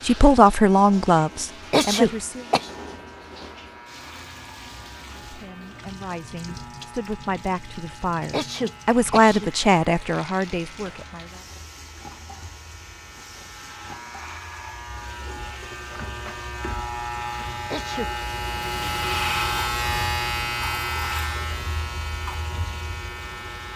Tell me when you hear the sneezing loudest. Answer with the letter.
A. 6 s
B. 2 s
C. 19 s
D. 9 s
B.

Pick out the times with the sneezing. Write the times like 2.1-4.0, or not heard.
1.7-2.7, 8.3-9.5, 17.7-18.1.